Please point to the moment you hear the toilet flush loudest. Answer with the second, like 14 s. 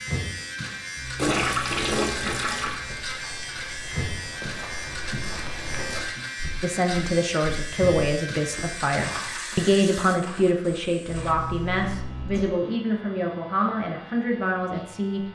2 s.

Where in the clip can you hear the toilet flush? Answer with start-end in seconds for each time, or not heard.
1.1-2.8, 9.1-10.2.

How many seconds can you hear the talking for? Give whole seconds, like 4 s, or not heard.
9 s.